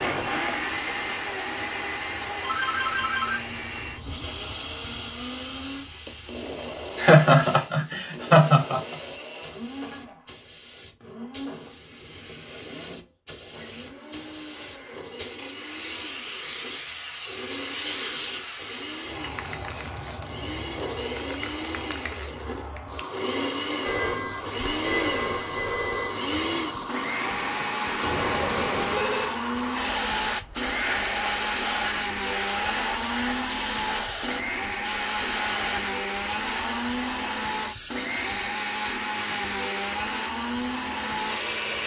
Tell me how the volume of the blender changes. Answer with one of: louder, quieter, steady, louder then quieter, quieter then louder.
quieter then louder.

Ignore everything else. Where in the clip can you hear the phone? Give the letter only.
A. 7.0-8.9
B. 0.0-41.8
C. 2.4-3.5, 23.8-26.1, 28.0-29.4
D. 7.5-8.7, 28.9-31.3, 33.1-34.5
C.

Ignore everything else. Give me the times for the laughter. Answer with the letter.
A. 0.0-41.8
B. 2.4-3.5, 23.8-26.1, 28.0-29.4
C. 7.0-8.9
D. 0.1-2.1
C.